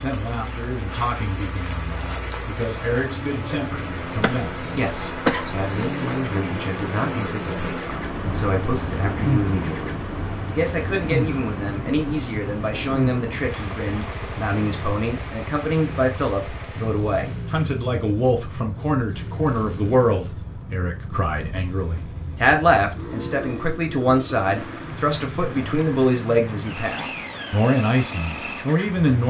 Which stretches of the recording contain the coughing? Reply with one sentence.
You can hear the coughing from 4.2 to 6.2 s.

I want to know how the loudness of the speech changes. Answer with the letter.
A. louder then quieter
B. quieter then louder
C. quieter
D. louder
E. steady
D.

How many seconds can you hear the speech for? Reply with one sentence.
The speech can be heard for 29 seconds in total.